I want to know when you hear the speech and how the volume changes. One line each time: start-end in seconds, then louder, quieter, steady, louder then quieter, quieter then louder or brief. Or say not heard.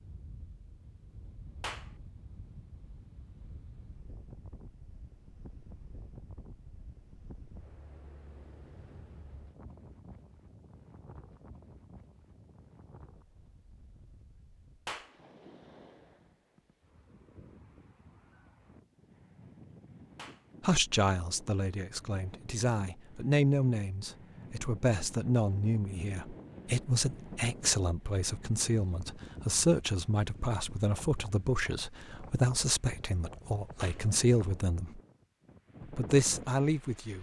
20.6-35.0 steady
35.9-37.1 brief.